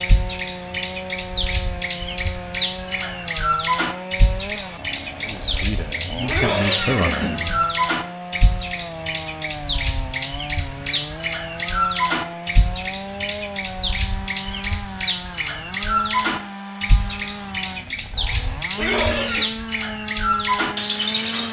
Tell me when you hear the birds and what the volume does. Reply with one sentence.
The birds can be heard from 0.0 to 21.4 s, at a steady volume.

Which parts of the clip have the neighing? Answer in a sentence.
You can hear the neighing from 6.2 to 7.5 s and from 18.7 to 19.5 s.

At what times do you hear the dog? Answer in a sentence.
You can't hear the dog here.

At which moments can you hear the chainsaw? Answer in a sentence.
The chainsaw can be heard from 0.0 to 21.4 s.